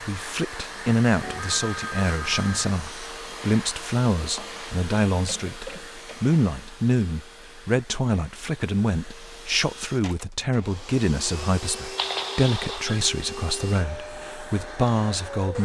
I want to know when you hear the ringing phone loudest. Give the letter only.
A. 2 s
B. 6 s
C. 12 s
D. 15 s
C.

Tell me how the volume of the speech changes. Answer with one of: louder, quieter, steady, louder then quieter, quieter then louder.
steady.